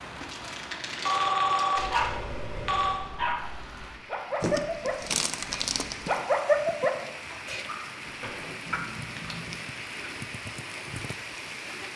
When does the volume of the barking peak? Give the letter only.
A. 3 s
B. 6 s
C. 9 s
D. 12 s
B.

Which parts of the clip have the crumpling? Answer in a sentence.
The crumpling can be heard from 0.2 to 2.2 s, from 4.4 to 6.2 s and from 8.7 to 9.6 s.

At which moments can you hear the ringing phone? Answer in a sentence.
You can hear the ringing phone from 1.0 to 3.0 s.